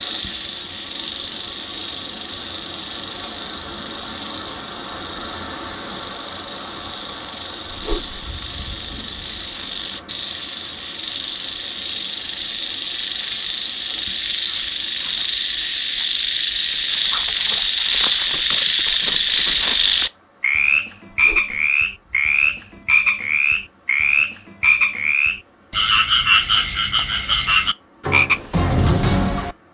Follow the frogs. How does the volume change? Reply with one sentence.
The loudness of the frogs goes up.